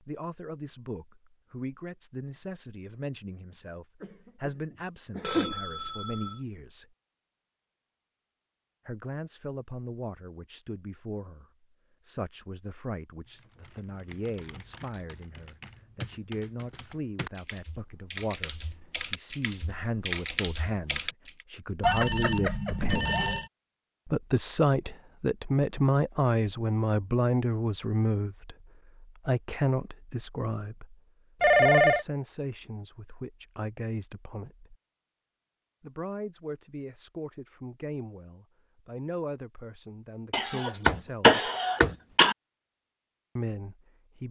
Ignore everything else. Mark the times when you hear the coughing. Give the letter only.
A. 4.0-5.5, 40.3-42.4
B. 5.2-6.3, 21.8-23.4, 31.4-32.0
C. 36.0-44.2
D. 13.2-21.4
A.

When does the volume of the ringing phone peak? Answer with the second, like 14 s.
32 s.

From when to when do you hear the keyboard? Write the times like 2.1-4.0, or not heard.
13.2-21.4.